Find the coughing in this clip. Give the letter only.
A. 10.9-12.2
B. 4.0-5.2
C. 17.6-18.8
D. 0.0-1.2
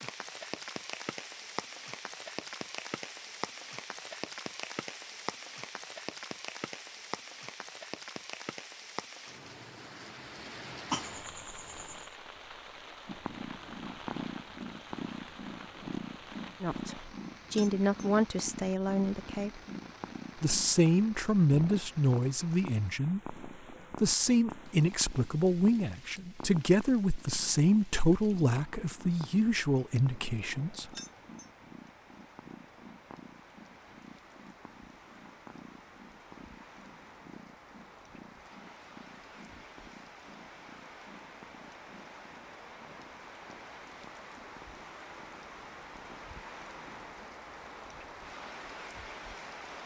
A.